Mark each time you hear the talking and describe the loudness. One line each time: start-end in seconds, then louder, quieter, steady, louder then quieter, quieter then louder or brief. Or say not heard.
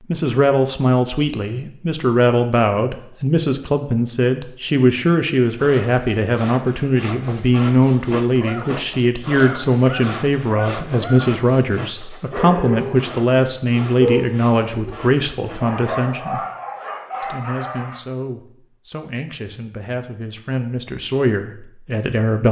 0.1-16.4 steady
17.2-22.4 louder.